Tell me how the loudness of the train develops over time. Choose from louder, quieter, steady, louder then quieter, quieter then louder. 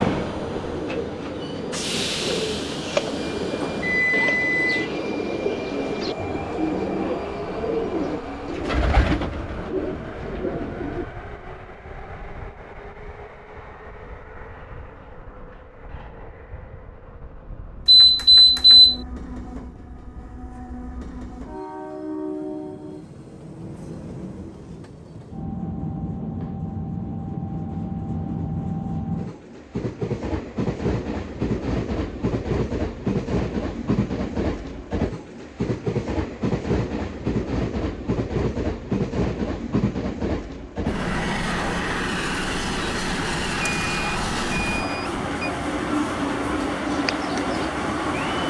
quieter then louder.